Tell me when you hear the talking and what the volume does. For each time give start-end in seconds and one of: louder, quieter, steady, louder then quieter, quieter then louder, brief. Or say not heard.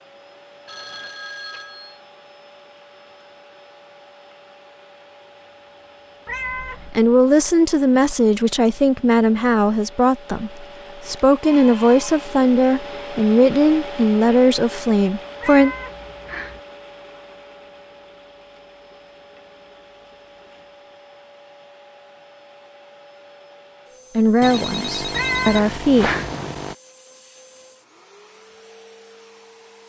6.8-15.8 steady
24.1-26.1 brief.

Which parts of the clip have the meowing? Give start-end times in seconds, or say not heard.
6.2-6.9, 15.4-16.6, 25.1-26.4.